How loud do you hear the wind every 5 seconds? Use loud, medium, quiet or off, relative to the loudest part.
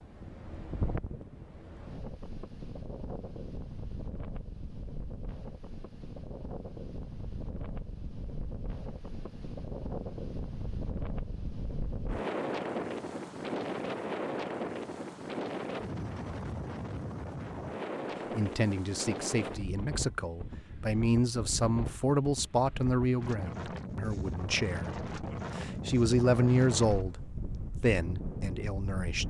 medium, medium, loud, loud, medium, loud.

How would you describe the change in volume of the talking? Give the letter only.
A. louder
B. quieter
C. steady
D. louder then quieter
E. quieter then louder
D.